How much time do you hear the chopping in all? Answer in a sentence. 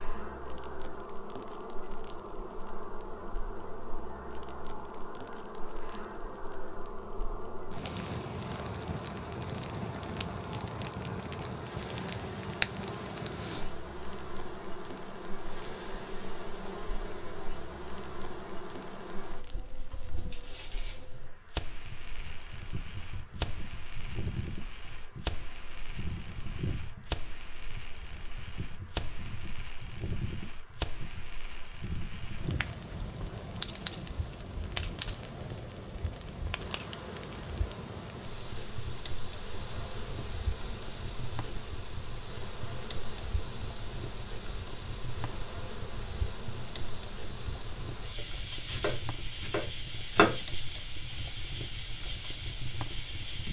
You can hear the chopping for 2 seconds altogether.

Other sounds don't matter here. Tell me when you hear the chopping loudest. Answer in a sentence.
The volume of the chopping peaks at 50 seconds.